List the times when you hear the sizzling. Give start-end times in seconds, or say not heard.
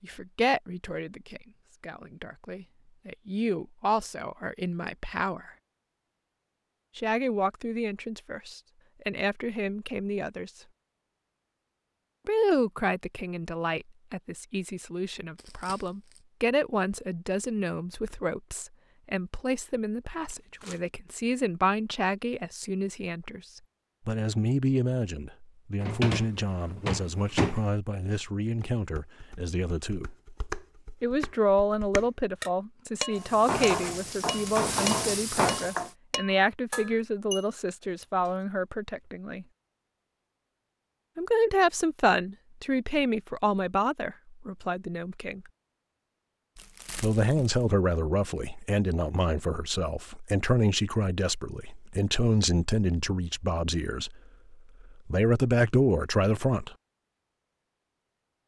33.1-35.9.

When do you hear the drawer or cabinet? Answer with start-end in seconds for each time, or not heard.
25.8-27.6.